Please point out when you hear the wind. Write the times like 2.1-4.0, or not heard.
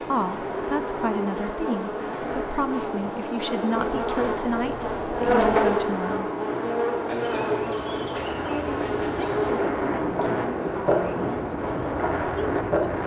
0.0-13.0.